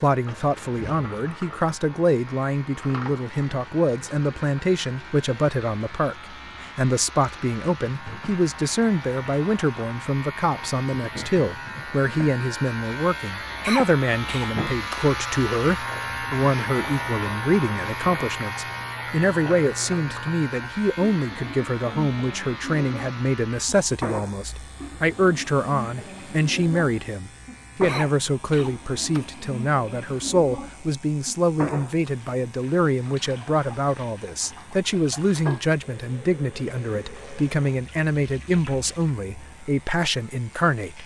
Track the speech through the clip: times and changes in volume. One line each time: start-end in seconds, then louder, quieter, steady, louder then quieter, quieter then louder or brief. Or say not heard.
0.0-41.0 steady.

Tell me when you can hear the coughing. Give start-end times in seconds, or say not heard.
13.6-15.0, 27.9-29.2.